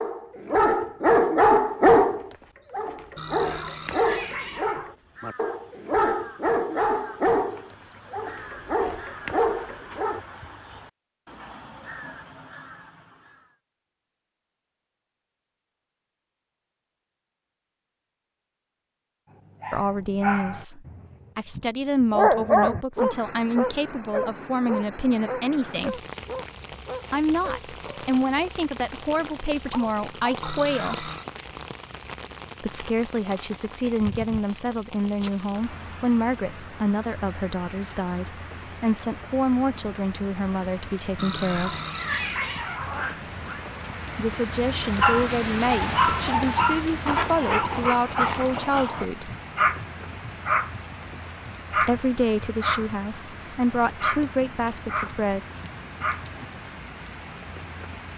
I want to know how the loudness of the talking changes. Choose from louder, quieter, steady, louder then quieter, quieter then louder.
steady.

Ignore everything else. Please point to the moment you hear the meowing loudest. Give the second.
42 s.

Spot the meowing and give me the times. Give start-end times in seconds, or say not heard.
3.1-5.0, 30.4-31.2, 41.1-43.7.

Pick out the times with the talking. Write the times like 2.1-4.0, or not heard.
19.7-26.0, 27.1-31.1, 32.6-41.8, 44.1-49.4, 51.8-55.4.